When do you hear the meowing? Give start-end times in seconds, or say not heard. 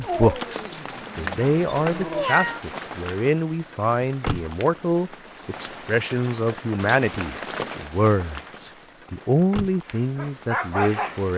1.6-2.6.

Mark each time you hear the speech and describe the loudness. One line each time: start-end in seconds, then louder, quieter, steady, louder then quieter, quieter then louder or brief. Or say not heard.
0.0-11.3 steady.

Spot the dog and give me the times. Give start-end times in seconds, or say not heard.
0.0-2.3, 9.8-11.2.